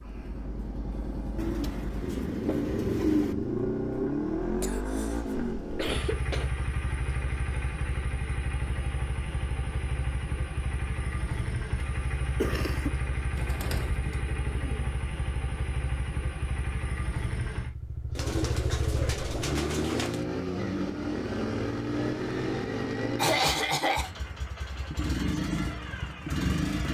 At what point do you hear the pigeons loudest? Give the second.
3 s.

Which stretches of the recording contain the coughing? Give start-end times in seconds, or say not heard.
4.6-6.5, 12.3-12.9, 23.1-24.1.